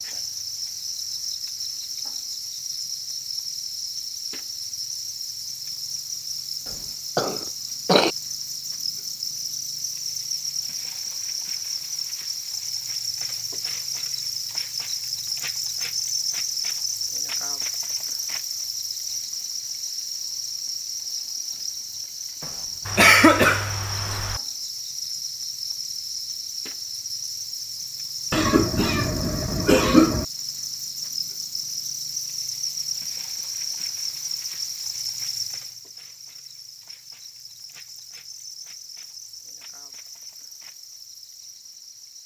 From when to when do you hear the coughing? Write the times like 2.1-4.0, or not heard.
7.2-8.1, 22.4-24.4, 28.3-30.2.